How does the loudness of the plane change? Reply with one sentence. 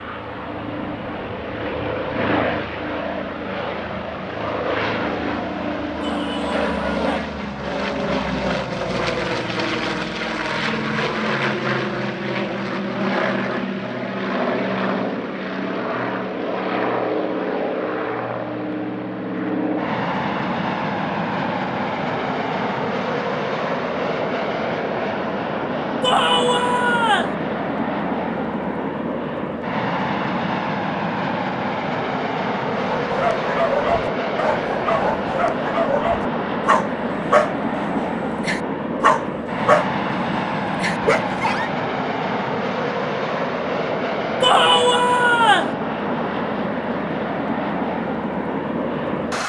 The volume of the plane stays about the same.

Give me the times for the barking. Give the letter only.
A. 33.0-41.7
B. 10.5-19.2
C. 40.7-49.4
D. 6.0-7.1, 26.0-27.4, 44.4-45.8
A.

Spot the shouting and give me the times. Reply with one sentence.
You can hear the shouting from 6.0 to 7.1 s, from 26.0 to 27.4 s and from 44.4 to 45.8 s.